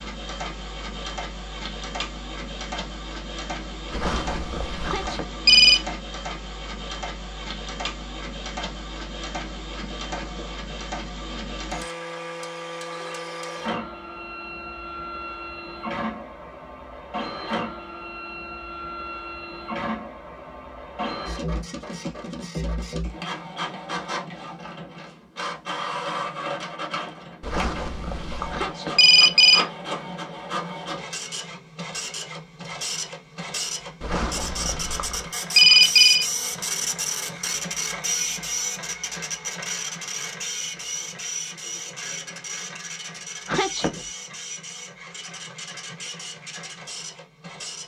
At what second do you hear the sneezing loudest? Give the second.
44 s.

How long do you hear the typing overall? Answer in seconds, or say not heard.
not heard.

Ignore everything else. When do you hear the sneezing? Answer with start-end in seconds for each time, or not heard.
4.8-5.4, 28.5-29.1, 43.5-44.0.